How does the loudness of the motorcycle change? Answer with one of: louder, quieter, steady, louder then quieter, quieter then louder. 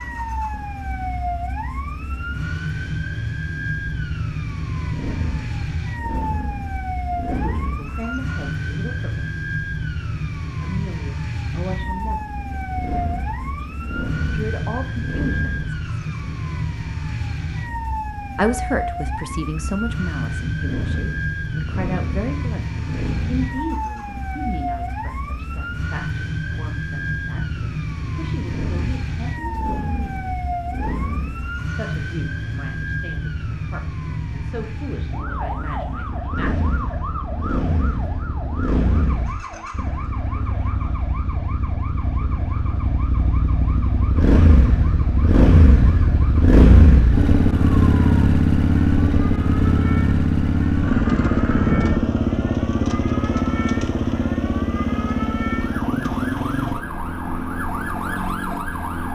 louder.